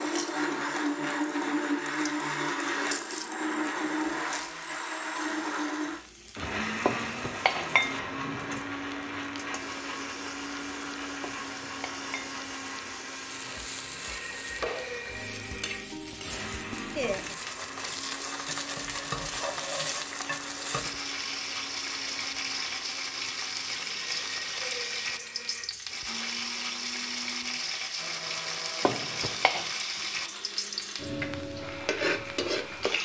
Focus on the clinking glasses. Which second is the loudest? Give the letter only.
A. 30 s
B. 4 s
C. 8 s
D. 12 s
C.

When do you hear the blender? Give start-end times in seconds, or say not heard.
0.0-33.0.